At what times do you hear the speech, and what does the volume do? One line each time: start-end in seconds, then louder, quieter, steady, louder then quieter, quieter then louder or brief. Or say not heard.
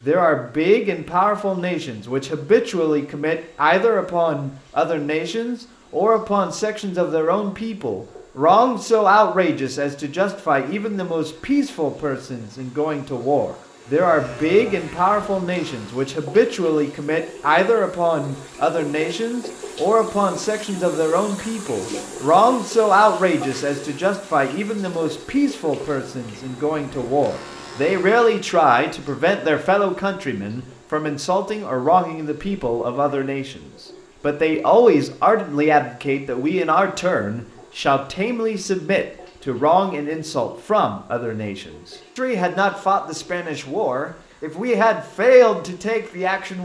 0.0-46.6 steady.